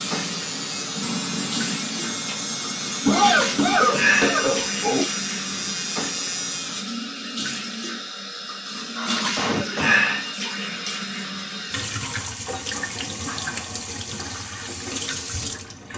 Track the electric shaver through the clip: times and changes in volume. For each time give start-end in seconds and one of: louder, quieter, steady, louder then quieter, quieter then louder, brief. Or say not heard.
0.0-6.8 steady.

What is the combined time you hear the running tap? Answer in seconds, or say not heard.
16 s.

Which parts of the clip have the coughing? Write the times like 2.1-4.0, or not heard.
3.0-5.0, 8.8-10.0.